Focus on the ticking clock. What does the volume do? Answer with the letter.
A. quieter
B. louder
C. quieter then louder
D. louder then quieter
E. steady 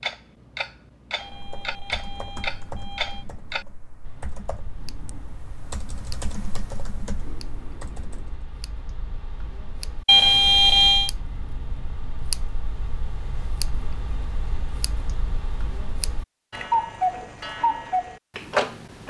C.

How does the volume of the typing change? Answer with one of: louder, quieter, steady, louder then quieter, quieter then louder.
quieter then louder.